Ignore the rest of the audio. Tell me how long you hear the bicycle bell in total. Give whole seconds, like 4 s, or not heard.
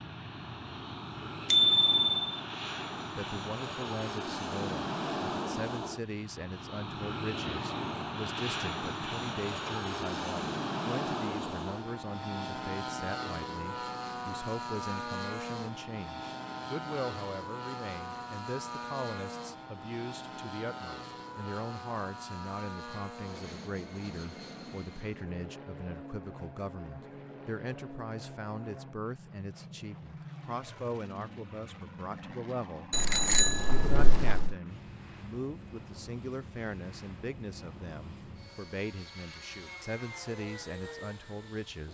2 s.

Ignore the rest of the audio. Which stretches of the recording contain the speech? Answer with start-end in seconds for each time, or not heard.
3.1-41.8.